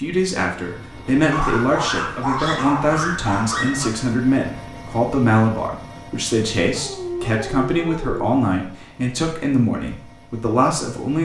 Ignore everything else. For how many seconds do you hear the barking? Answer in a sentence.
You can hear the barking for 4 seconds altogether.